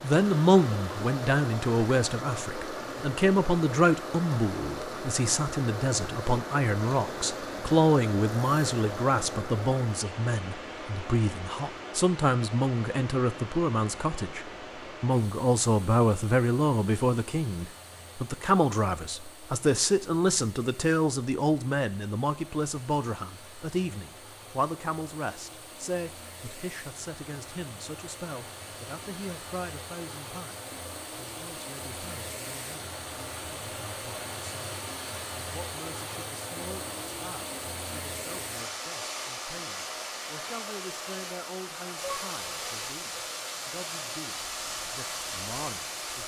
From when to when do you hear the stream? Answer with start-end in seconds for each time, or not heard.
0.0-46.2.